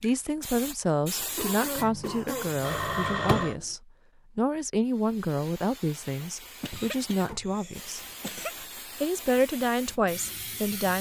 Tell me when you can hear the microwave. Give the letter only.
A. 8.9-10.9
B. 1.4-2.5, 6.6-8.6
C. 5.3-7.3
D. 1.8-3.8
D.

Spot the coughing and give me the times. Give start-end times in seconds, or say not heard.
1.4-2.5, 6.6-8.6.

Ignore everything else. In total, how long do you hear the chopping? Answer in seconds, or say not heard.
not heard.